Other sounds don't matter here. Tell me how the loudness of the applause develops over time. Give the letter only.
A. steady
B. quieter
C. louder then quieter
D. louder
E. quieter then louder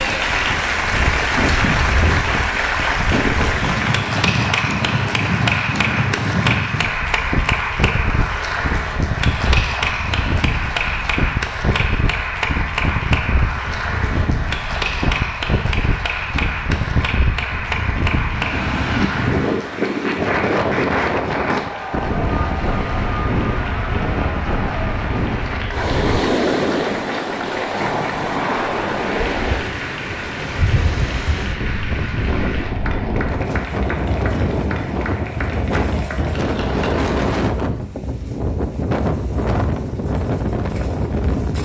B.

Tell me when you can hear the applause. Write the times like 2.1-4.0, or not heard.
0.0-37.1.